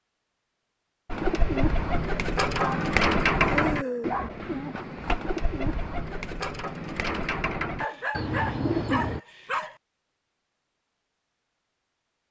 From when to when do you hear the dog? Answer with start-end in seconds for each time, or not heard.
2.5-4.3, 7.8-9.8.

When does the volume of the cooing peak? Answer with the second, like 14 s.
3 s.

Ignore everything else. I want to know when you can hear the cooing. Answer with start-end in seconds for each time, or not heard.
1.1-9.2.